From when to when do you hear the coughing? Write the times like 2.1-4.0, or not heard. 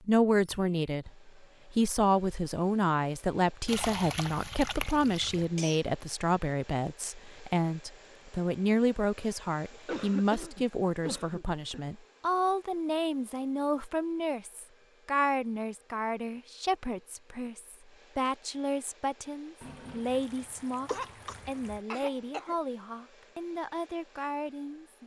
5.3-5.8, 9.7-11.8, 20.9-22.6.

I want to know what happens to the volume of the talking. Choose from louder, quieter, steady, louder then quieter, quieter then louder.
quieter.